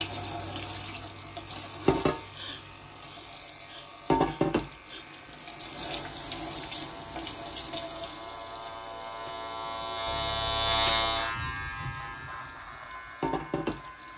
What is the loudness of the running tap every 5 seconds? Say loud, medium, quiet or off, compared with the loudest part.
loud, medium, medium.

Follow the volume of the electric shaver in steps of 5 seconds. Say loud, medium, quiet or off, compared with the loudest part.
quiet, medium, loud.